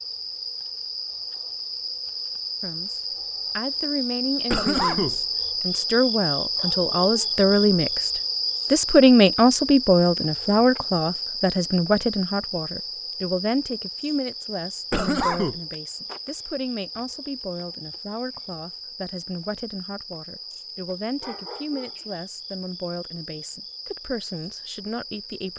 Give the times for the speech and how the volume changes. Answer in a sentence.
The speech can be heard from 2.6 to 25.5 s, getting louder then quieter.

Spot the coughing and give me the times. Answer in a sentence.
The coughing can be heard from 4.5 to 5.2 s and from 14.9 to 15.6 s.